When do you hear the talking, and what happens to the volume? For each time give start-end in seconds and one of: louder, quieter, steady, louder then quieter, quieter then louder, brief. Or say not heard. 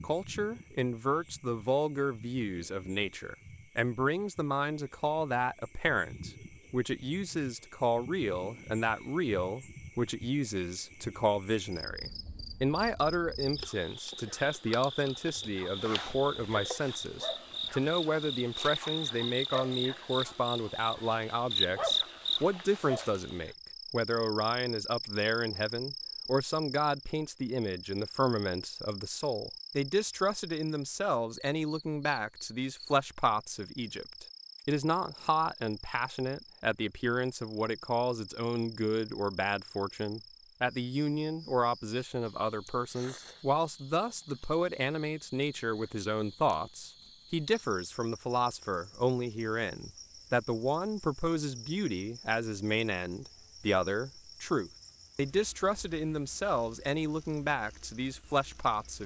0.0-59.0 steady.